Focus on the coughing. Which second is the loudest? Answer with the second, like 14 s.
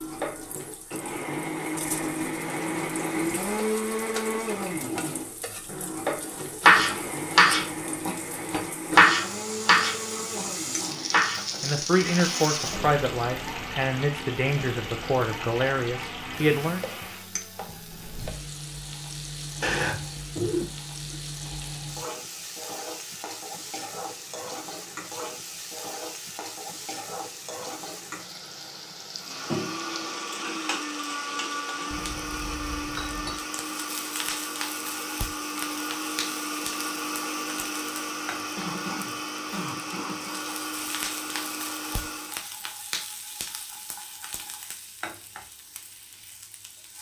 20 s.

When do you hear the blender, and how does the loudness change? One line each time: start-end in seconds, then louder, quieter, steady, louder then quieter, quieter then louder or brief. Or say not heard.
0.0-17.3 quieter
29.1-42.4 steady.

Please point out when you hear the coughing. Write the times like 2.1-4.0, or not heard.
19.6-21.1, 38.5-40.4.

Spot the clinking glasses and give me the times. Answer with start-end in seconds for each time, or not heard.
31.9-33.5.